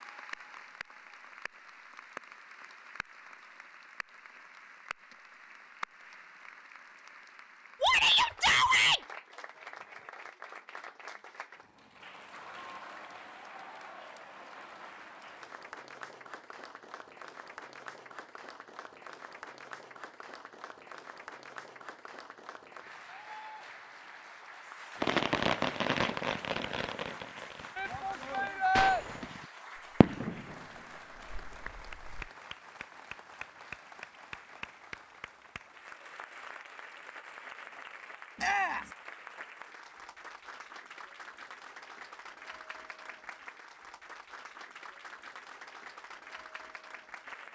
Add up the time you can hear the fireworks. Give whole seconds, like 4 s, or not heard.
7 s.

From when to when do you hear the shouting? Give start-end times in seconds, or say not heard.
7.8-9.0, 27.8-29.1, 38.4-38.9.